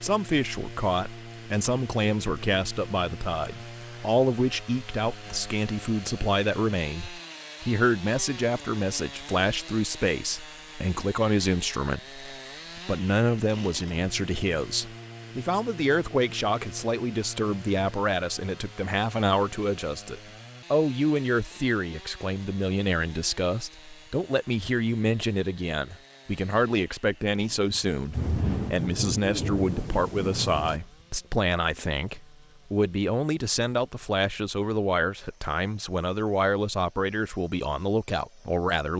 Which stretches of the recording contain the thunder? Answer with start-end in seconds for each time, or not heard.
28.1-30.8.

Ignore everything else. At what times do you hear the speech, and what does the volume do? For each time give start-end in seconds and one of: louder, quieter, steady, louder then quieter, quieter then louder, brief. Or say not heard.
0.0-38.9 steady.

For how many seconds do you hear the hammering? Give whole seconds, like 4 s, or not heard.
not heard.